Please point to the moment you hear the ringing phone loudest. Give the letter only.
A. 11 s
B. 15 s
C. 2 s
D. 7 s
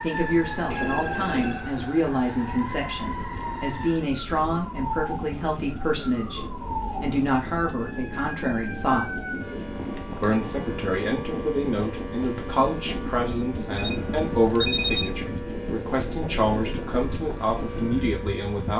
B.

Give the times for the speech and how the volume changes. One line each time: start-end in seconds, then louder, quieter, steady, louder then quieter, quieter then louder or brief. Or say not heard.
0.0-9.2 steady
10.2-18.7 steady.